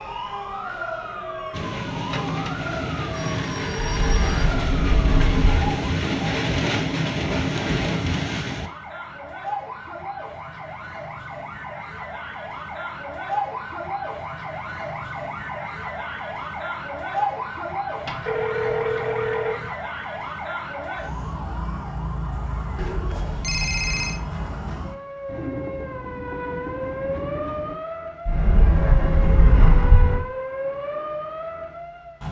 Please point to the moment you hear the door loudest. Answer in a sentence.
The loudest moment of the door is at 30 seconds.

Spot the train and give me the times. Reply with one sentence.
The train can be heard from 1.5 to 8.7 s and from 25.2 to 27.8 s.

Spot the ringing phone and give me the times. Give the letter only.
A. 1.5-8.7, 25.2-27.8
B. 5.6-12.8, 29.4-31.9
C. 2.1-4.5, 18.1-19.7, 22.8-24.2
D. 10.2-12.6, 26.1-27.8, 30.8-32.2
C.